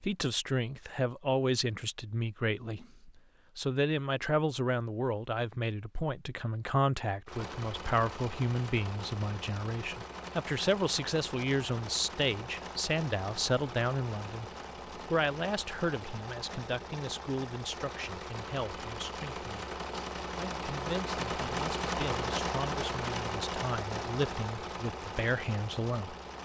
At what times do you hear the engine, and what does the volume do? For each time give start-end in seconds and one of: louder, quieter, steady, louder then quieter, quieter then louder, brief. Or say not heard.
7.2-26.4 louder.